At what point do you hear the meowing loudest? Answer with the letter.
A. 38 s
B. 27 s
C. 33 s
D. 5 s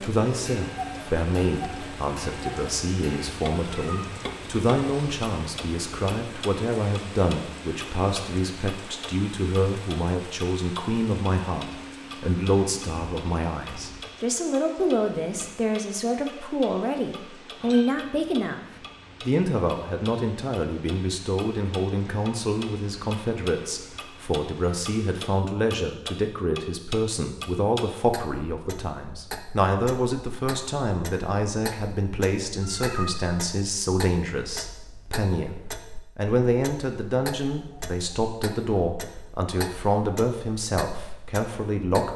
C.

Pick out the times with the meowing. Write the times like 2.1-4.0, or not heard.
3.6-4.2, 32.6-33.2.